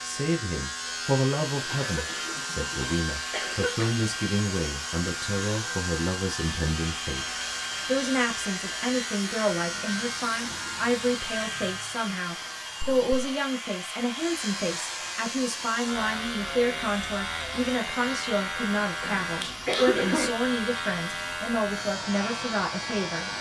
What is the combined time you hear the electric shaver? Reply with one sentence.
The electric shaver can be heard for 23 seconds in total.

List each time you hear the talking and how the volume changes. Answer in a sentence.
The talking can be heard from 0.0 to 23.3 s, at a steady volume.